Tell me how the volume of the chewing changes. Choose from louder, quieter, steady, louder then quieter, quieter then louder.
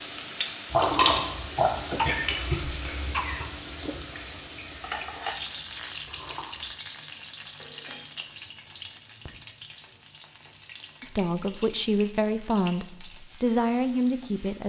quieter.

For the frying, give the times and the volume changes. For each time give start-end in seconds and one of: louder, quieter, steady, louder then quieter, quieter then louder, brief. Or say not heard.
0.0-14.6 quieter.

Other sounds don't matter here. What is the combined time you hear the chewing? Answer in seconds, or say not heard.
6 s.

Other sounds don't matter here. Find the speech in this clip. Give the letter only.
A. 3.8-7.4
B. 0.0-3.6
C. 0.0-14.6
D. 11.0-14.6
D.